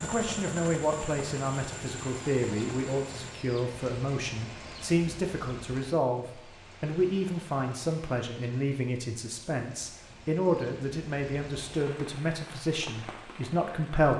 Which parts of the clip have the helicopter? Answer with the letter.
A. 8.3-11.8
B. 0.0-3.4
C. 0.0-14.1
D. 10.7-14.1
B.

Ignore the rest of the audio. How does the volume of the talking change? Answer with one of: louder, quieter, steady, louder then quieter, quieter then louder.
steady.